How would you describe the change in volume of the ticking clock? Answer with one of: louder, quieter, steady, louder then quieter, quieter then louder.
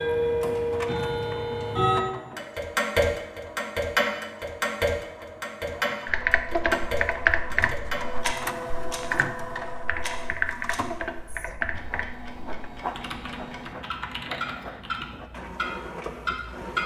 quieter then louder.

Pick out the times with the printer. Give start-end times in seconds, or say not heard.
0.2-16.8.